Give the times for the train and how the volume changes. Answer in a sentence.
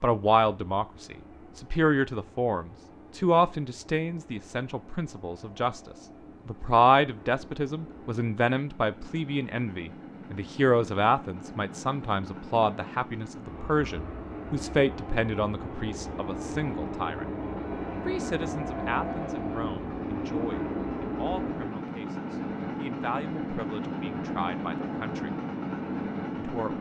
You can hear the train from 0.0 to 26.7 s, getting louder.